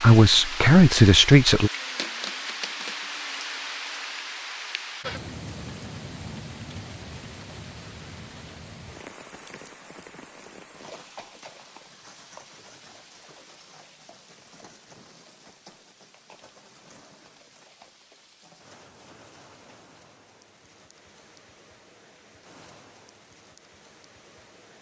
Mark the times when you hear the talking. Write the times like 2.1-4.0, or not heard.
0.0-1.7.